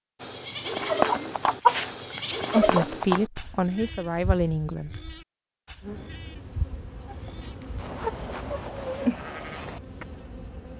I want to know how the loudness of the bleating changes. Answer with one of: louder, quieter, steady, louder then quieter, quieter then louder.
quieter then louder.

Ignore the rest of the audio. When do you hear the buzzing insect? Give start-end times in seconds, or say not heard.
5.8-10.7.